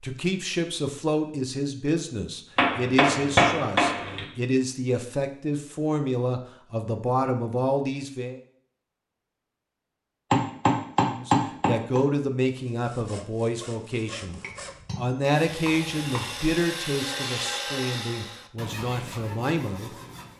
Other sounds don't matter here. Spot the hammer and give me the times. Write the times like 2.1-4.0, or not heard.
2.5-4.2, 10.3-12.0, 14.2-16.5.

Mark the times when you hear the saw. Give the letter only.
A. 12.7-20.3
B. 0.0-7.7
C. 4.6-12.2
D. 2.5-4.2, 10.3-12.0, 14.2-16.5
A.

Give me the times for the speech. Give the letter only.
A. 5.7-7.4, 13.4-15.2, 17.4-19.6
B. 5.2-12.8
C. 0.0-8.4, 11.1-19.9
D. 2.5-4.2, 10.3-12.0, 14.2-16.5
C.